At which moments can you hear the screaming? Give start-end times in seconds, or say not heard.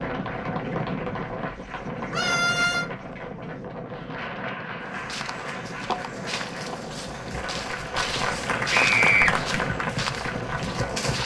2.1-2.9, 8.7-9.3.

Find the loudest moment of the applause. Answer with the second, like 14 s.
9 s.